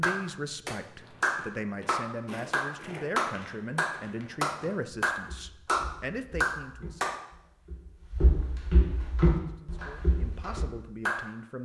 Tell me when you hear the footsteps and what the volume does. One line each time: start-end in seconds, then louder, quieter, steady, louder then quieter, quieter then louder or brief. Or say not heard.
0.9-10.8 quieter then louder.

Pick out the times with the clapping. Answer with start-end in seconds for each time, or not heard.
0.0-7.2, 9.2-11.3.